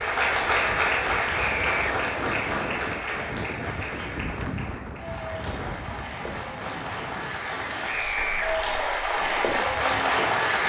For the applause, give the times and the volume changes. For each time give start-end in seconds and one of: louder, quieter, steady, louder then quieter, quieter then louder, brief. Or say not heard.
0.0-10.6 quieter then louder.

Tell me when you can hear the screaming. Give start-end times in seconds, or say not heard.
1.4-1.9, 7.8-8.5.